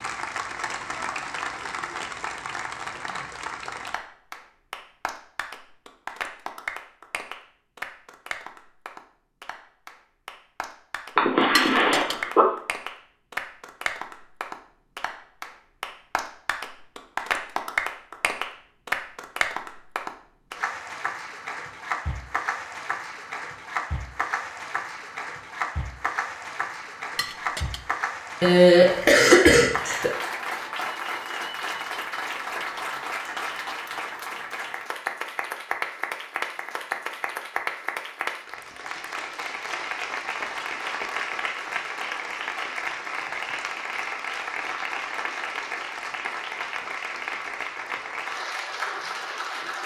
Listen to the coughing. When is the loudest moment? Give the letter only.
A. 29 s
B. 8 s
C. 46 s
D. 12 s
A.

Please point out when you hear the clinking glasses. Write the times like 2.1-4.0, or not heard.
11.6-12.2, 27.1-27.9.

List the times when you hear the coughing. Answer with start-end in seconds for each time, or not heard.
11.2-12.4, 28.4-30.1.